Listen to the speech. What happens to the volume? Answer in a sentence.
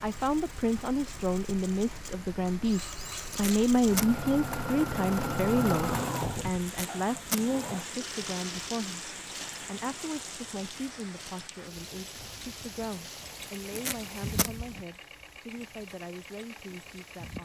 The loudness of the speech goes down.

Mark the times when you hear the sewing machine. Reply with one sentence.
You can hear the sewing machine from 0.0 to 17.4 s.